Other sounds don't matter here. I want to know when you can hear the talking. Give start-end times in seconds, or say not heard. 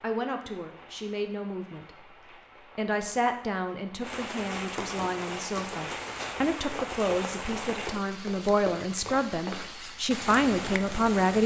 0.0-1.9, 2.8-11.4.